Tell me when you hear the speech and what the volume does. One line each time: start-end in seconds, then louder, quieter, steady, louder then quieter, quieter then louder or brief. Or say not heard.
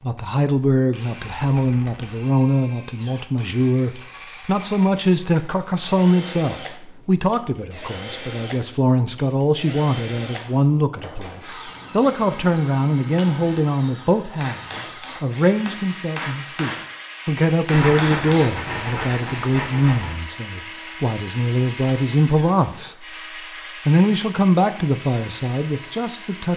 0.0-23.1 steady
23.9-26.5 brief.